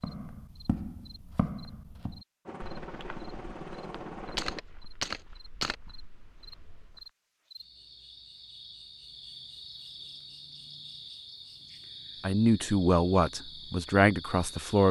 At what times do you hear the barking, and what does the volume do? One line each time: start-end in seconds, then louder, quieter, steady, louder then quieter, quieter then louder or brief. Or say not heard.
not heard.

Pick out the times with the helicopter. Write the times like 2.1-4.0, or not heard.
2.5-4.6.